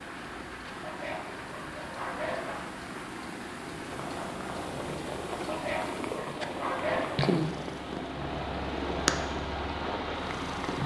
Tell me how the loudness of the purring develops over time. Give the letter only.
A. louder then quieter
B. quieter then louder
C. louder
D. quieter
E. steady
C.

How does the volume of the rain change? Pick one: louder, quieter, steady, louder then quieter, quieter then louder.
louder.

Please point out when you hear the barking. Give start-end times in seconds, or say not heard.
0.8-2.6, 5.5-7.1.